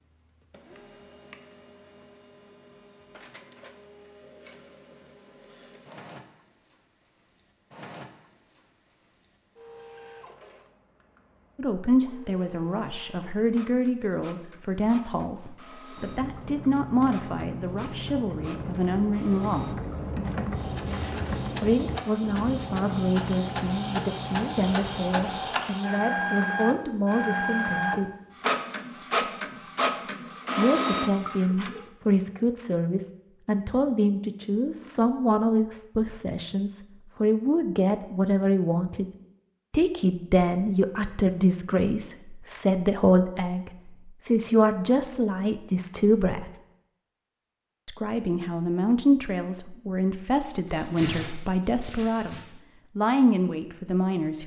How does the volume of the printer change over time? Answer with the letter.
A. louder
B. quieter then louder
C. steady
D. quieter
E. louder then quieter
A.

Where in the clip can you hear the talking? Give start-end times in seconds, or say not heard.
11.6-19.8, 21.6-28.1, 30.6-39.0, 39.7-46.5, 47.9-54.4.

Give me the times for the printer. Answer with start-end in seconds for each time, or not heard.
0.0-31.9.